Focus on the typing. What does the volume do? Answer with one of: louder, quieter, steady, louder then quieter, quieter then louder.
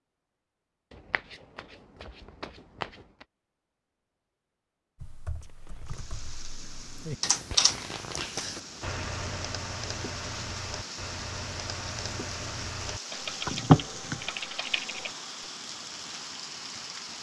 louder then quieter.